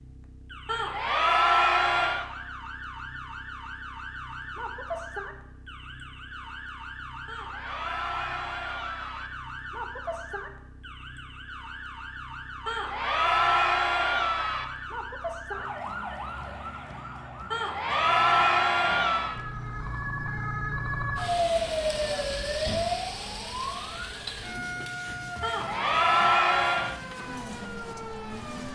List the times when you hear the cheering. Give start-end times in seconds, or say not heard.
0.7-2.2, 7.2-9.3, 12.7-14.7, 17.5-19.4, 25.4-26.9.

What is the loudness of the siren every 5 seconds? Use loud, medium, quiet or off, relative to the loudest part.
medium, medium, medium, medium, loud, medium.